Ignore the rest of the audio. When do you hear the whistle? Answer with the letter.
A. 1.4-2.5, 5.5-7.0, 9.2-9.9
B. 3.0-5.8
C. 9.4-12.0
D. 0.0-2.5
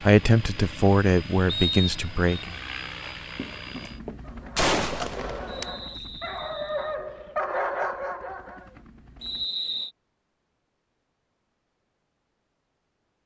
A.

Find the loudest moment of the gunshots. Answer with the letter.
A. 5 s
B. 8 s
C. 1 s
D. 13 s
A.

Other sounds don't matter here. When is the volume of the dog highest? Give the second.
8 s.